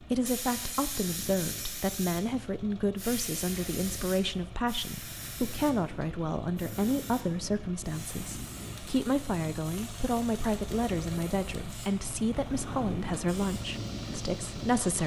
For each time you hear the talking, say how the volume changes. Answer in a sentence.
The talking can be heard from 0.0 to 15.0 s, at a steady volume.